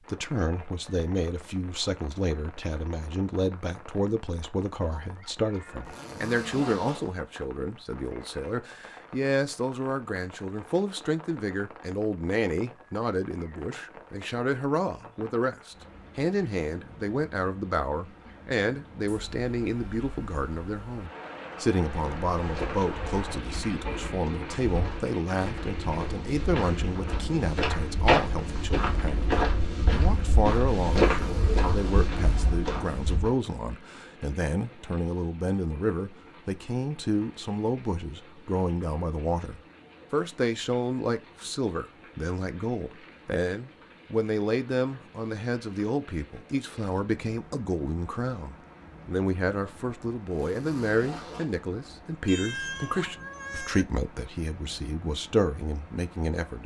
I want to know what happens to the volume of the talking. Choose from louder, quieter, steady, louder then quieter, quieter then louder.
steady.